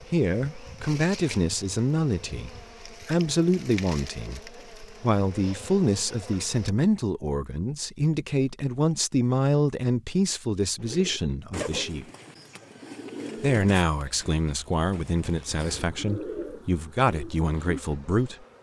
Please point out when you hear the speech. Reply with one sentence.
The speech can be heard from 0.1 to 12.1 s and from 13.4 to 18.4 s.